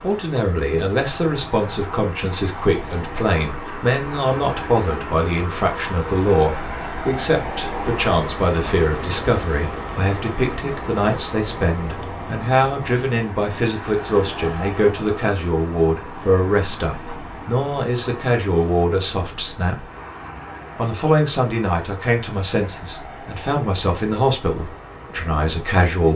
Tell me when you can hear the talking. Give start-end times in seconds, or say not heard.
0.0-19.9, 20.8-26.1.